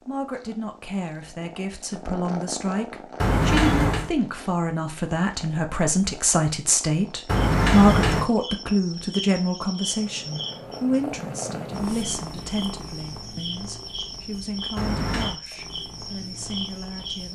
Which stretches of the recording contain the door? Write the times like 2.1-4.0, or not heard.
3.2-4.1, 7.2-8.3, 14.8-15.3.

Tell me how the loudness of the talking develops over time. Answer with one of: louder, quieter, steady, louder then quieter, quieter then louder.
louder then quieter.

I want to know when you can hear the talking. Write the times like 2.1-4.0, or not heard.
0.0-17.3.